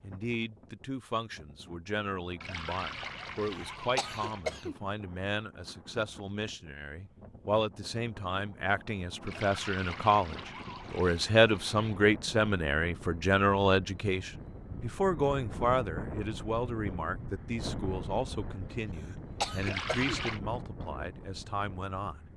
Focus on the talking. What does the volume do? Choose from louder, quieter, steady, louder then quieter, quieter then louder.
louder then quieter.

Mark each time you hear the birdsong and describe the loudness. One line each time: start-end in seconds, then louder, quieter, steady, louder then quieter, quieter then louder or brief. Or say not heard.
not heard.